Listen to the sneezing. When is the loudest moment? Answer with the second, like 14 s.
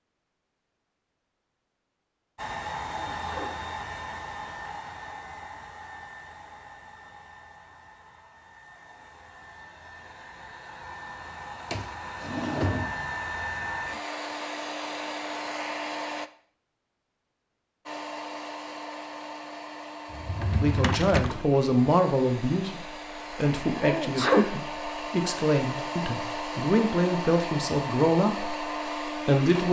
24 s.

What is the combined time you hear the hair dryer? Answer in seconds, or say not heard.
26 s.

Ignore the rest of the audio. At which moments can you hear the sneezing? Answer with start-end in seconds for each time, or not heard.
2.8-3.6, 23.8-24.6.